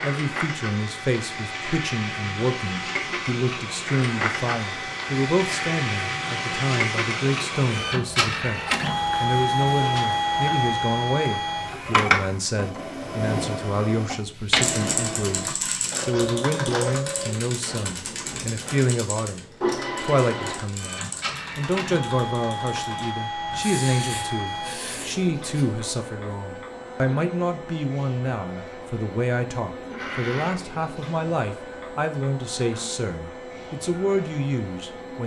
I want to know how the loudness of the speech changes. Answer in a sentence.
The loudness of the speech stays about the same.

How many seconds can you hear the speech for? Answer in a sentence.
You can hear the speech for 35 seconds altogether.